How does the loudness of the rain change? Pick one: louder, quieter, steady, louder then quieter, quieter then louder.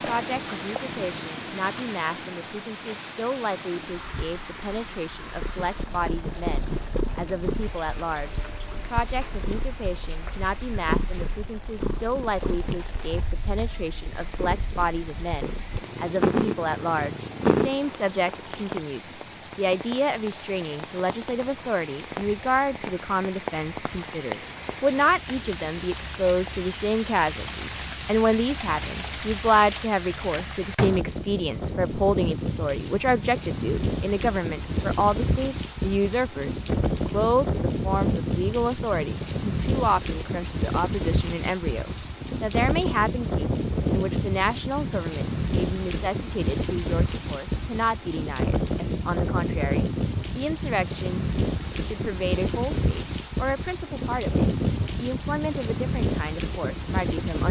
louder.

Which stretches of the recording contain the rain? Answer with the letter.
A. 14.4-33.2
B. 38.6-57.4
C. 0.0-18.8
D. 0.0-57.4
D.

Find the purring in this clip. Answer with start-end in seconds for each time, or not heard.
0.0-18.8.